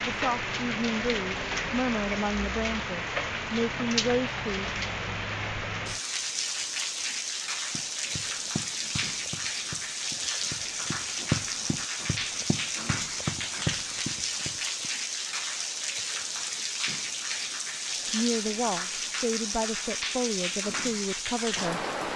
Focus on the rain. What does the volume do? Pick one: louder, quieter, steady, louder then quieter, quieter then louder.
steady.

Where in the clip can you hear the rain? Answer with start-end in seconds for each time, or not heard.
0.0-22.1.